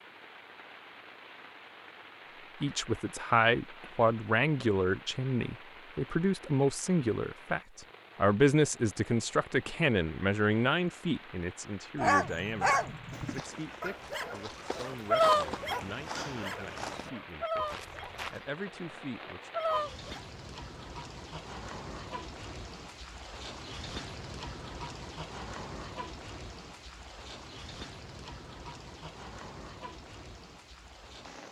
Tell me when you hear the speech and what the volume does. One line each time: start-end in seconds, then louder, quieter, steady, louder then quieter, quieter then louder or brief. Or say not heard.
2.6-19.6 quieter.